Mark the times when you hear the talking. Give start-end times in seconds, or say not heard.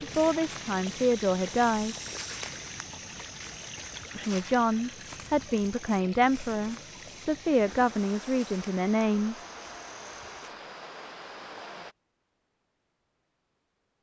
0.0-1.9, 4.2-9.4.